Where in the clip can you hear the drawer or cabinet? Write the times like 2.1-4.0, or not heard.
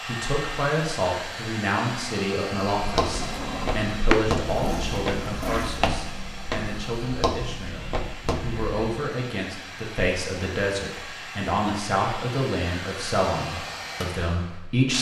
3.0-4.3.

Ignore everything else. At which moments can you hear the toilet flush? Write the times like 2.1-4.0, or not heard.
4.4-5.8.